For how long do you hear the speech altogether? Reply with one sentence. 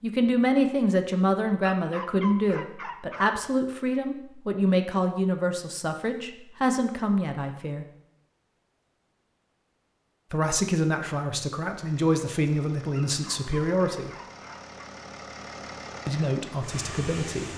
You can hear the speech for 13 seconds altogether.